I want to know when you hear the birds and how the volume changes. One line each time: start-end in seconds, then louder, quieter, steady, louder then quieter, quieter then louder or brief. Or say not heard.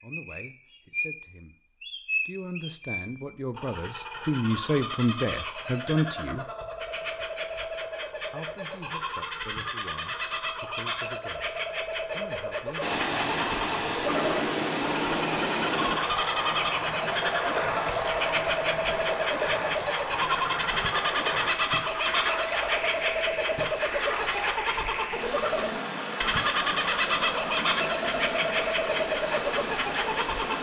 0.0-30.5 louder.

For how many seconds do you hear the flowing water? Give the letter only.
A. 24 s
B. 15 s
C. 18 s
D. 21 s
C.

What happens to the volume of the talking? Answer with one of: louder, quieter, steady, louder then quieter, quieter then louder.
louder then quieter.